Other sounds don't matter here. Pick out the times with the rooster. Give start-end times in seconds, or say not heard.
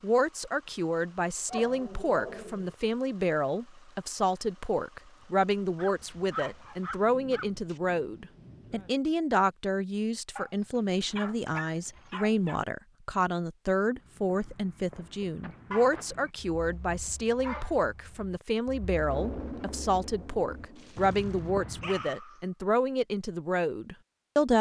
not heard.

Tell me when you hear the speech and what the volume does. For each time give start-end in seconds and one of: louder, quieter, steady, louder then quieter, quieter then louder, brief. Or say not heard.
0.0-24.5 steady.